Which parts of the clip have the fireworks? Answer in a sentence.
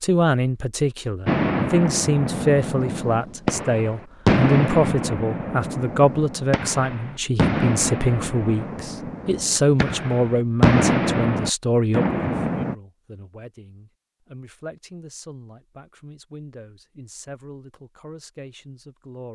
You can hear the fireworks from 1.2 to 12.8 s.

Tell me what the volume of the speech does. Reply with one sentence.
The loudness of the speech goes down.